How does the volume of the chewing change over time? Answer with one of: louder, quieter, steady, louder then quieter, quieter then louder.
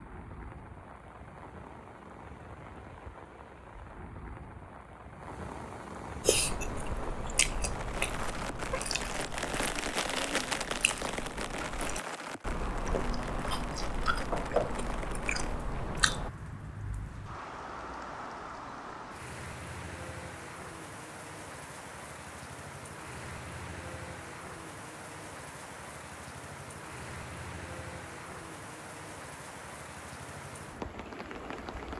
quieter then louder.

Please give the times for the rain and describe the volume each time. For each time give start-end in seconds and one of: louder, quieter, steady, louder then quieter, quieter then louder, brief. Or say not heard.
0.0-31.9 louder then quieter.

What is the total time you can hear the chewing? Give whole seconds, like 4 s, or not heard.
10 s.